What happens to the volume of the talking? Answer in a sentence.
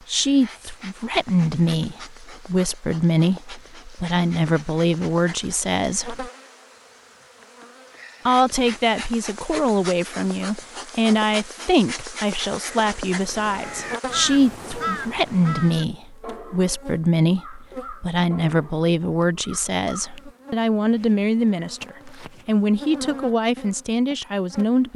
The loudness of the talking stays about the same.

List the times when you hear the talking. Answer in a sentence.
You can hear the talking from 0.1 to 6.3 s and from 8.2 to 24.9 s.